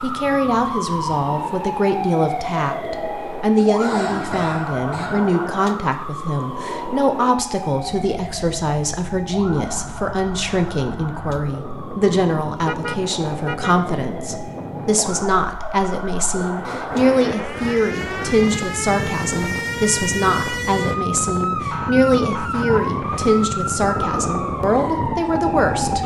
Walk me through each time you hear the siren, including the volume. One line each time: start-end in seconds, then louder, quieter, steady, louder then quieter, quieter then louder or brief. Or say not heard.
0.0-26.0 quieter then louder.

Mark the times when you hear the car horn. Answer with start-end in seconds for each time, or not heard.
12.6-13.8.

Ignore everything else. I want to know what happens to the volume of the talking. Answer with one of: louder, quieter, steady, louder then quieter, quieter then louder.
steady.